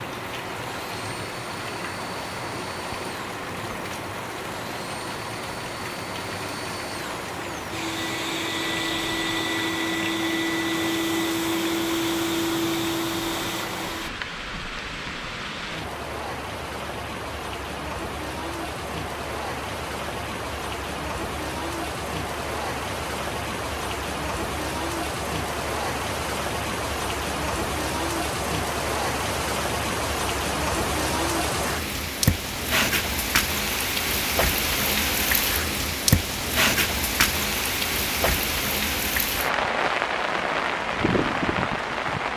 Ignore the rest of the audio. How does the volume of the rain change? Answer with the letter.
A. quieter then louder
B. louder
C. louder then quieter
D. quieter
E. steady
B.